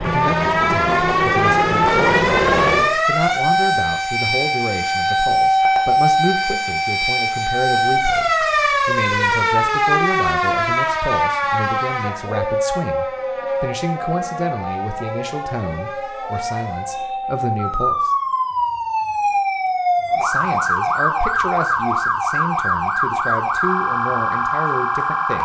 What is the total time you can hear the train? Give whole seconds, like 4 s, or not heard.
3 s.